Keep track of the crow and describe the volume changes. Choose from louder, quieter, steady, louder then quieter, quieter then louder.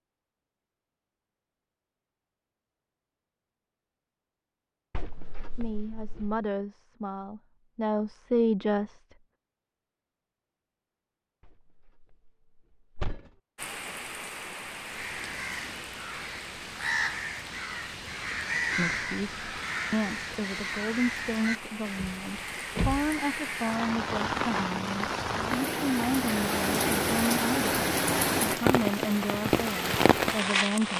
louder then quieter.